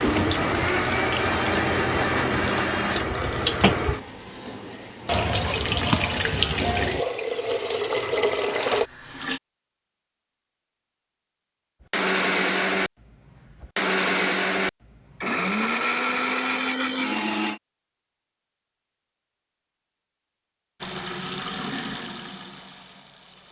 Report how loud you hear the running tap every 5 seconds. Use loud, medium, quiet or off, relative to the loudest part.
loud, loud, off, off, medium.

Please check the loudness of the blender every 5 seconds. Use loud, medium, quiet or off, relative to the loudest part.
loud, off, loud, loud, off.